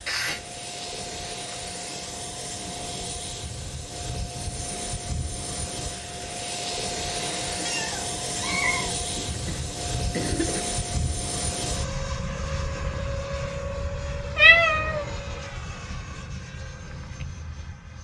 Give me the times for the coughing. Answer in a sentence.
The coughing can be heard from 9.2 to 10.6 s.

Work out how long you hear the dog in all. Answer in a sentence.
You can't hear the dog here.